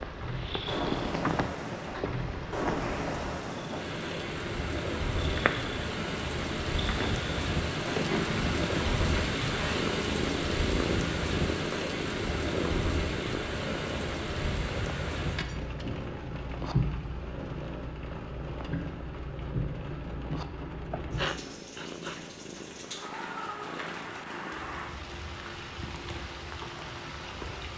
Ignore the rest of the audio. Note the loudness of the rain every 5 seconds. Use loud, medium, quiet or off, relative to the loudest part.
loud, loud, loud, loud, medium, medium.